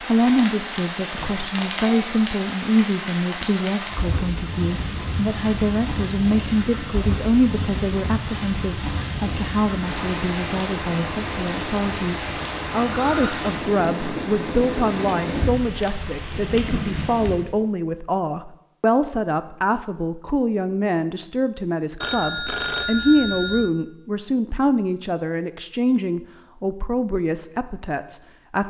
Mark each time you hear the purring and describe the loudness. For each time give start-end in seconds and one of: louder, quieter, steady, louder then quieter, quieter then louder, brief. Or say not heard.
not heard.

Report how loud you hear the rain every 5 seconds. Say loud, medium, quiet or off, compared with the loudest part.
loud, loud, loud, loud, off, off.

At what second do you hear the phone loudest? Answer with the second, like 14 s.
23 s.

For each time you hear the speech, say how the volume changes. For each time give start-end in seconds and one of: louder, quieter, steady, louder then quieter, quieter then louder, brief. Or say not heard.
0.0-28.6 steady.